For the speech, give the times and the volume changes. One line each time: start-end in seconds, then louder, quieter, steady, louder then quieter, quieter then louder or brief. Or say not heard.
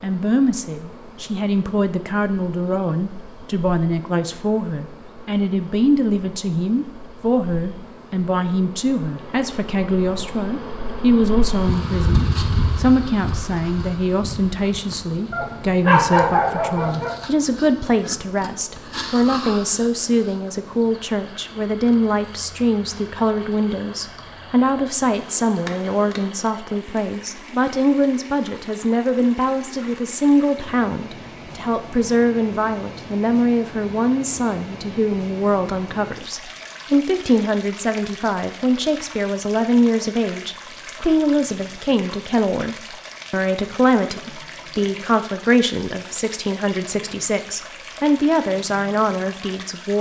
0.0-49.9 steady.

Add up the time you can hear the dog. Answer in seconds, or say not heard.
2 s.